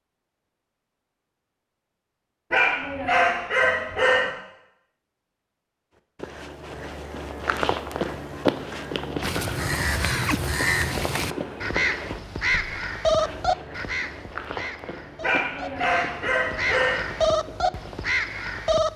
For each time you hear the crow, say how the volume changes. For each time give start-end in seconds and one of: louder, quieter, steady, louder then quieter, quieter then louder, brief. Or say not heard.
9.2-18.9 quieter then louder.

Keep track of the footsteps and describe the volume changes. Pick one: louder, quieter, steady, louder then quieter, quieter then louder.
quieter.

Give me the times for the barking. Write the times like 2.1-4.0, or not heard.
2.5-4.3, 15.2-17.1.